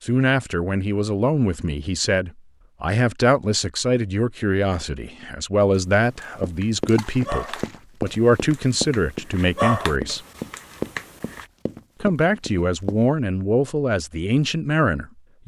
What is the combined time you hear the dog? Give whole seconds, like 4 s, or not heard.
6 s.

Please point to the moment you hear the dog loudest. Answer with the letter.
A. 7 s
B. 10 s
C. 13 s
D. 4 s
B.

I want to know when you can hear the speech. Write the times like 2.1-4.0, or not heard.
0.0-10.2, 12.0-15.4.